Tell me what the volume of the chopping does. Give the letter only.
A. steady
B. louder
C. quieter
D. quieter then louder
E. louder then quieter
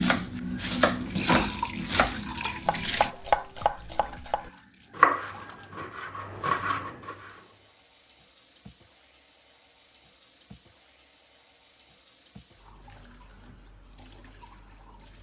E.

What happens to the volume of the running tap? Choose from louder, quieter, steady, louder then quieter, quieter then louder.
quieter.